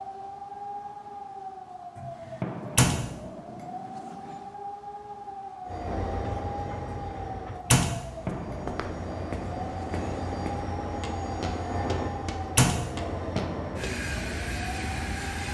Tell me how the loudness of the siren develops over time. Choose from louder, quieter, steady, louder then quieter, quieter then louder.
steady.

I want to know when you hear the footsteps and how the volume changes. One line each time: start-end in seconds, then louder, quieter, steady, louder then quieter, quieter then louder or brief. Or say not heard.
8.4-13.9 steady.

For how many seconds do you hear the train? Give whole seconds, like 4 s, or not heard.
10 s.